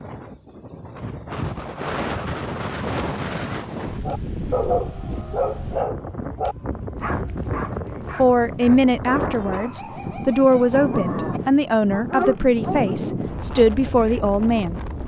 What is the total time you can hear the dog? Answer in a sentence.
You can hear the dog for 9 seconds altogether.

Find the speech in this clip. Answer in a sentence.
You can hear the speech from 8.2 to 14.8 s.